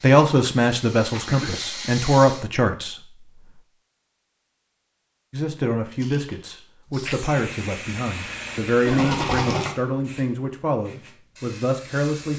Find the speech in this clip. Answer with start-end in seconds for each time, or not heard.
0.0-3.6, 5.3-12.3.